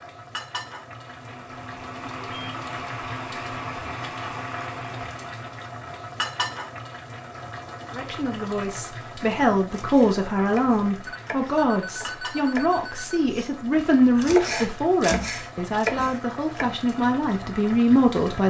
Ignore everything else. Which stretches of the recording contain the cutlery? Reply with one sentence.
The cutlery can't be heard in this clip.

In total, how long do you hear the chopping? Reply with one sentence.
You can hear the chopping for 7 seconds altogether.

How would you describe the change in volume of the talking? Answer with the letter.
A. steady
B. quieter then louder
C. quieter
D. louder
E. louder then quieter
A.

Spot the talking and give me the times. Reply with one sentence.
You can hear the talking from 7.9 to 18.4 s.